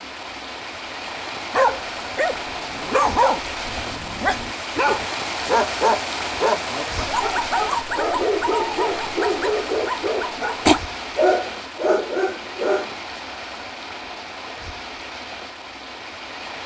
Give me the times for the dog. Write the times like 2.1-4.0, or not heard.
1.5-12.9.